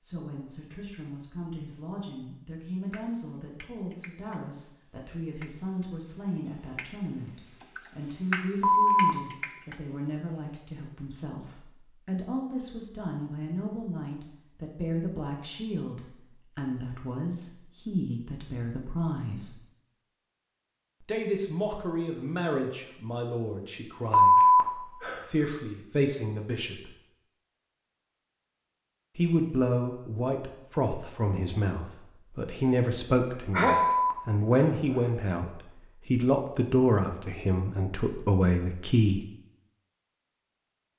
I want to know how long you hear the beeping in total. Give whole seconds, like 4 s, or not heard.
3 s.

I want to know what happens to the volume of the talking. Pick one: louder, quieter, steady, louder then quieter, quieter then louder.
louder.